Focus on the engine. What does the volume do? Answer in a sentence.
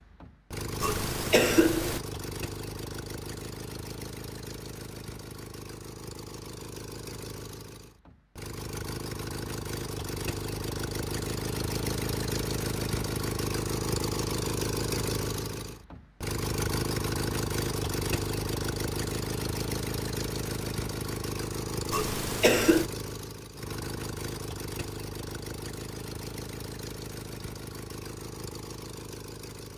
The volume of the engine goes up, then down.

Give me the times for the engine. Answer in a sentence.
The engine can be heard from 0.0 to 29.7 s.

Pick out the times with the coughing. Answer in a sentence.
The coughing can be heard from 0.8 to 2.0 s and from 21.9 to 22.9 s.